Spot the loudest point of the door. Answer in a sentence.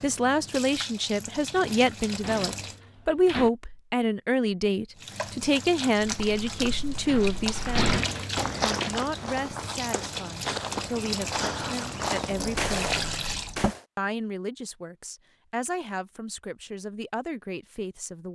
The loudest moment of the door is at 8 seconds.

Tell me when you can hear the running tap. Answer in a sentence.
The running tap can be heard from 0.0 to 2.8 s and from 5.0 to 13.6 s.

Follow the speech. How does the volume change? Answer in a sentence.
The loudness of the speech goes down.